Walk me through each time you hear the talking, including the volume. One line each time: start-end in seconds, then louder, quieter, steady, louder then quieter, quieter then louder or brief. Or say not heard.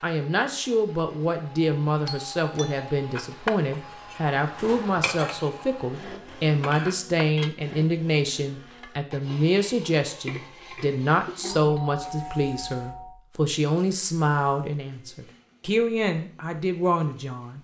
0.0-17.6 steady.